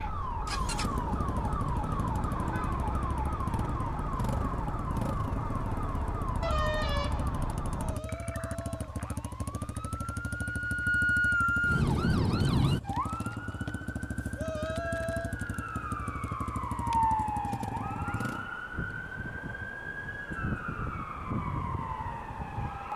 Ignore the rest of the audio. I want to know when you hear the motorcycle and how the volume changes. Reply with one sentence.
You can hear the motorcycle from 0.1 to 18.5 s, at a steady volume.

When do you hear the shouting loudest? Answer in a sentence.
The loudest moment of the shouting is at 15 seconds.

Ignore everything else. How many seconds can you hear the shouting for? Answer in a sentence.
You can hear the shouting for 2 seconds altogether.